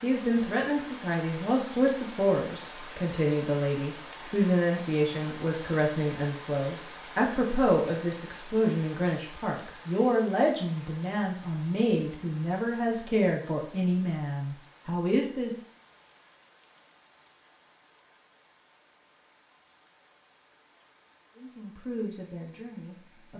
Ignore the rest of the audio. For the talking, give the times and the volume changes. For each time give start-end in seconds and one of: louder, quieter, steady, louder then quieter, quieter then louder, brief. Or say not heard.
0.0-15.6 steady
21.4-23.3 brief.